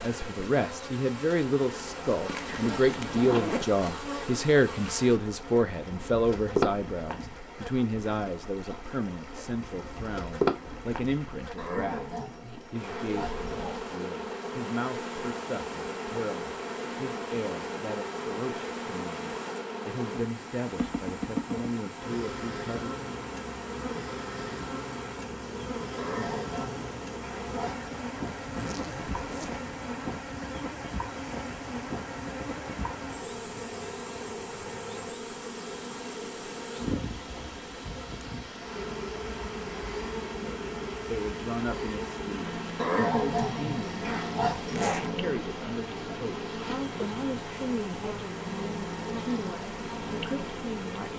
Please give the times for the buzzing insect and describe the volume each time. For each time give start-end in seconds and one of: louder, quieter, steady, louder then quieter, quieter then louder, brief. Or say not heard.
0.0-51.1 steady.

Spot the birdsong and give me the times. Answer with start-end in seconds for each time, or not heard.
not heard.